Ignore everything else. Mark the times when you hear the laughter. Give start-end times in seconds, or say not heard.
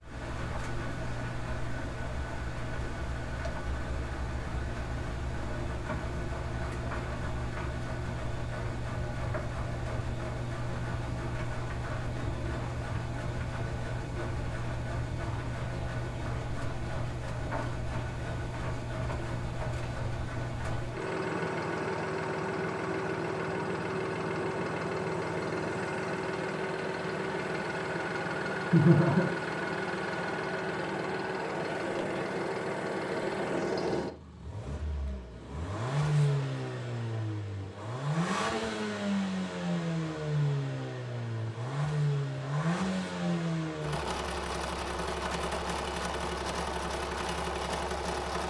28.7-29.3.